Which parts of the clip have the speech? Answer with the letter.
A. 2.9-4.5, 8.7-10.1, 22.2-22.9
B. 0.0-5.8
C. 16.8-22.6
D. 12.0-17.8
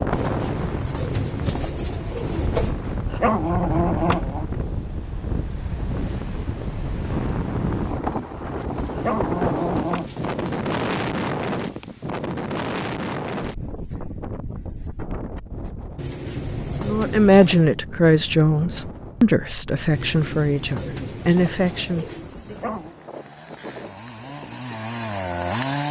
C.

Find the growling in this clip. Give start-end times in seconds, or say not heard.
2.9-4.5, 8.7-10.1, 22.2-22.9.